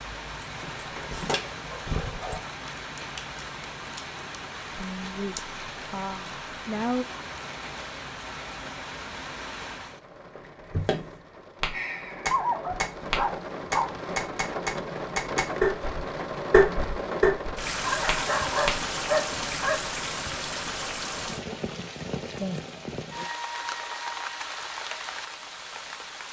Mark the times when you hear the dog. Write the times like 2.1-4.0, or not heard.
0.4-2.4, 12.3-13.9, 17.8-19.8.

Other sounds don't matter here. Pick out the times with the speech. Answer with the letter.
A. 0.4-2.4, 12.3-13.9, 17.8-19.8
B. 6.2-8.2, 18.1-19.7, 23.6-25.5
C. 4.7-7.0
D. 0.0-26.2
C.